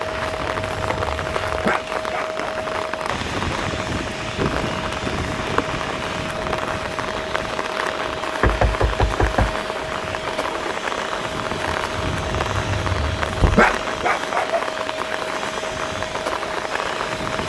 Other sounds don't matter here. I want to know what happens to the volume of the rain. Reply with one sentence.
The loudness of the rain stays about the same.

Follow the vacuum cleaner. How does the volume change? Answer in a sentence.
The loudness of the vacuum cleaner stays about the same.